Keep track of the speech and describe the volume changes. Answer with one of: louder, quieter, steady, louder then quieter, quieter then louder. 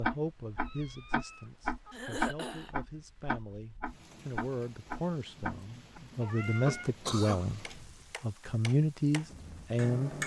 louder.